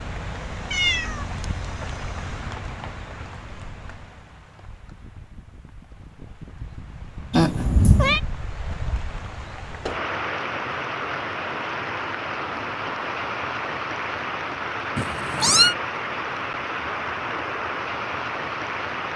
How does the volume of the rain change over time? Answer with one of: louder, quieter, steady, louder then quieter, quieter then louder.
quieter then louder.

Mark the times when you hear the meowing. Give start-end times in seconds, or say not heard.
0.7-1.6, 7.3-8.2, 14.9-15.8.